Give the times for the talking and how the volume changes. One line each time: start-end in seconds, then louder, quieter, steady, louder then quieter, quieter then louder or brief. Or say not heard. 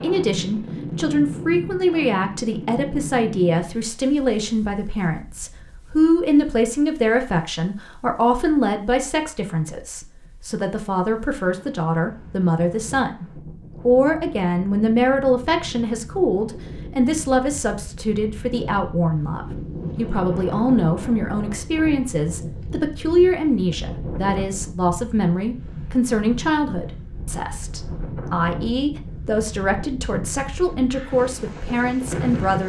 0.0-32.6 steady.